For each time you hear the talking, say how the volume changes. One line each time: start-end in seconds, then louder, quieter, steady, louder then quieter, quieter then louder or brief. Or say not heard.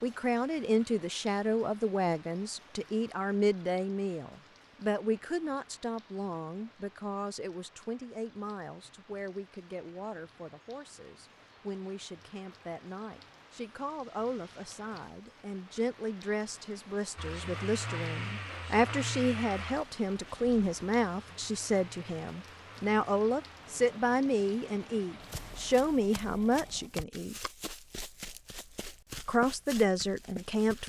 0.0-27.5 quieter then louder
29.2-30.8 brief.